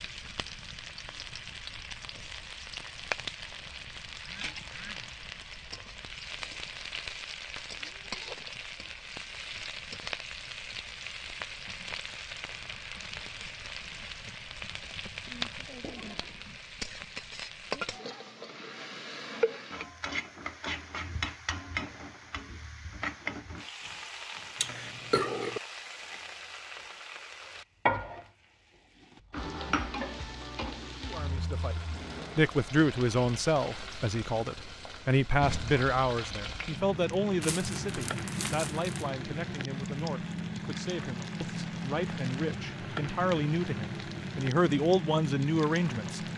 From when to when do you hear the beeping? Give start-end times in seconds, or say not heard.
not heard.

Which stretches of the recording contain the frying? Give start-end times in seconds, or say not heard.
0.0-46.3.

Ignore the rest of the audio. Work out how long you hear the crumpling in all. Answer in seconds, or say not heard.
2 s.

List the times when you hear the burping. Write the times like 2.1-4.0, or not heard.
24.6-25.6.